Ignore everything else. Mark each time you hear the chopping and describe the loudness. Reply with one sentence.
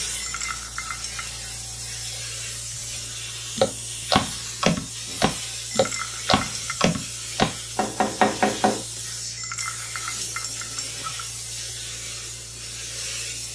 You can hear the chopping from 3.5 to 8.8 s, at a steady volume.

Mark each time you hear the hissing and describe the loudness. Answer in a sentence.
The hissing can be heard from 0.0 to 13.5 s, at a steady volume.